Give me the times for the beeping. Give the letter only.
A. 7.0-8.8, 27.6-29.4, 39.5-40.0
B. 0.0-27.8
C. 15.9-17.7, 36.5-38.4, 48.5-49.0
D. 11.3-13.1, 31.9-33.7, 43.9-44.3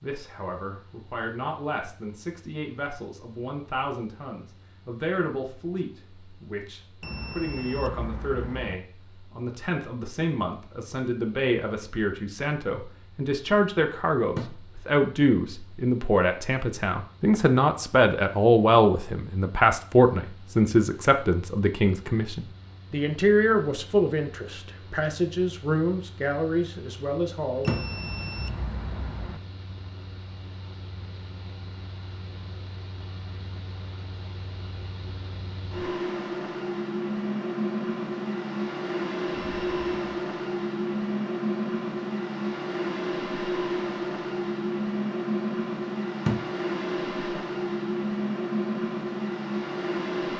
A.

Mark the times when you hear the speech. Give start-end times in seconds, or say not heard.
0.0-27.8.